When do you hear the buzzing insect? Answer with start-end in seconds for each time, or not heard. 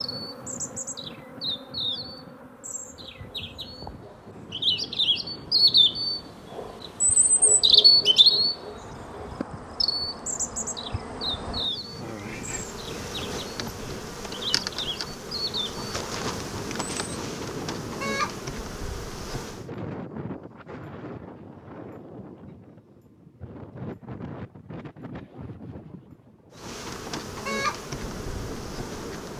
0.0-19.7, 26.6-29.3.